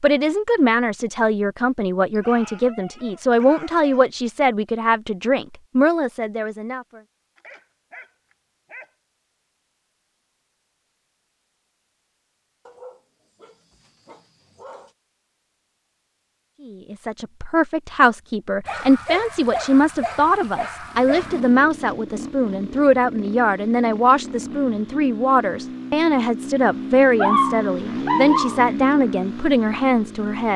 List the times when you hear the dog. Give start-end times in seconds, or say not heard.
2.1-4.1, 7.3-8.9, 12.7-14.9, 18.6-21.4, 27.1-28.7.